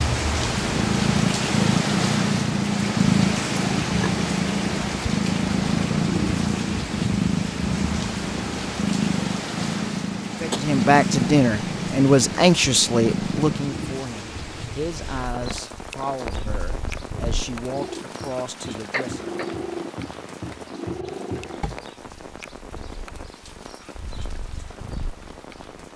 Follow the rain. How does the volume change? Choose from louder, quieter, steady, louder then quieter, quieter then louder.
quieter.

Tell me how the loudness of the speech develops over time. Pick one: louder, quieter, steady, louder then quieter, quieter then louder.
quieter.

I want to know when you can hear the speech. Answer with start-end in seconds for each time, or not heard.
10.4-19.2.